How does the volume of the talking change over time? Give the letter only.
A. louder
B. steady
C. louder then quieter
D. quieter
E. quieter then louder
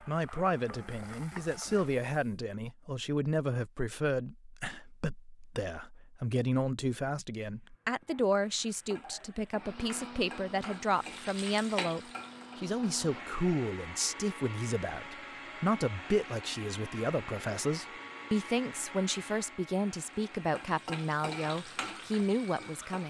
B.